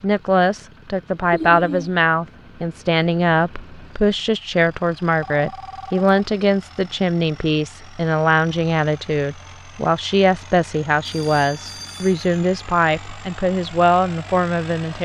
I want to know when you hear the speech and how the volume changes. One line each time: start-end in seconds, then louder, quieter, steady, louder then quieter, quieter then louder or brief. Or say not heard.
0.0-15.0 steady.